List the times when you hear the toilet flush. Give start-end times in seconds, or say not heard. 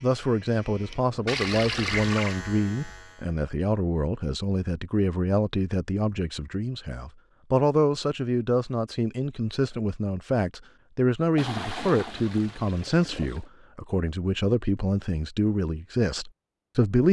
1.2-2.4, 11.3-13.4.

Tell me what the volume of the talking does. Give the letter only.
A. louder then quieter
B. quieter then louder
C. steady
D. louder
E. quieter
C.